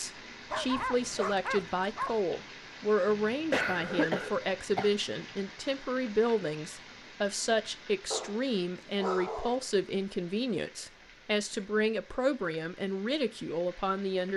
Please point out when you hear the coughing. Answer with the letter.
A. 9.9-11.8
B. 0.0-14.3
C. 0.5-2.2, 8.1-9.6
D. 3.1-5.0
D.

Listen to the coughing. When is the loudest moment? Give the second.
4 s.